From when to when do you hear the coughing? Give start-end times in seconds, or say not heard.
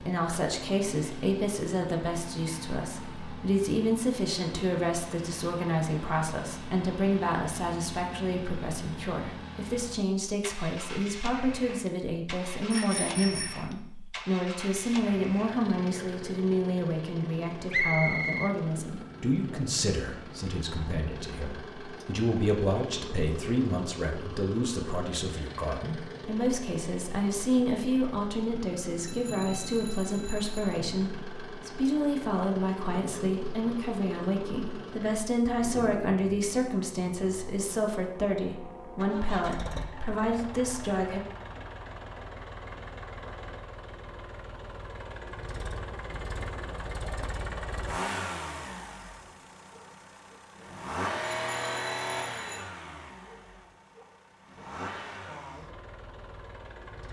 not heard.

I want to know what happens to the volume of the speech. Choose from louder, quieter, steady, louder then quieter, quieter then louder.
steady.